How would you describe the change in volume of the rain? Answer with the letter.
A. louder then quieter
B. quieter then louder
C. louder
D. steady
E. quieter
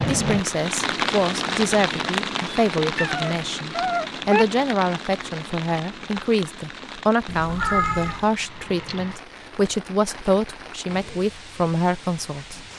E.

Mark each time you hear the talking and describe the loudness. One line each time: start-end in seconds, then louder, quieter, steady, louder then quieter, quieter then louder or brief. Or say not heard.
0.1-12.7 steady.